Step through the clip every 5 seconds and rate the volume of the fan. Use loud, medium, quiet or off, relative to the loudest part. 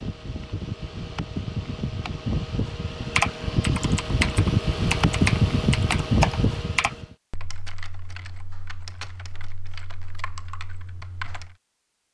medium, loud, off.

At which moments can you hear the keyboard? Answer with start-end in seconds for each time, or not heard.
3.1-11.6.